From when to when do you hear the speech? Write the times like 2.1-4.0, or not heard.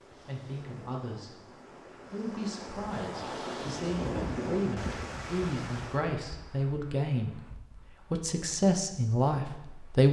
0.1-1.5, 2.1-10.0.